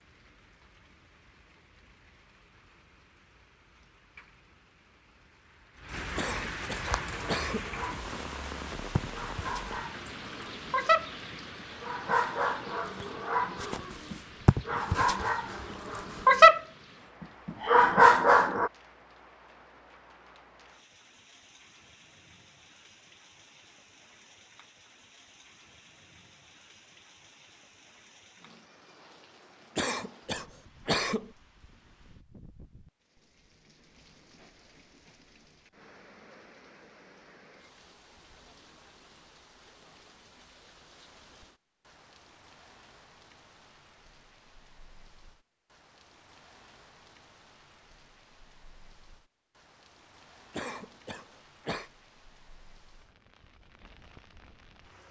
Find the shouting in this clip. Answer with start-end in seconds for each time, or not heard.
not heard.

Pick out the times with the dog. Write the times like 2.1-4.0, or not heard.
6.8-11.1, 11.8-16.6, 17.4-18.7.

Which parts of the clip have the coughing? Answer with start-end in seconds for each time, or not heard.
6.2-7.7, 29.8-31.3, 50.5-51.9.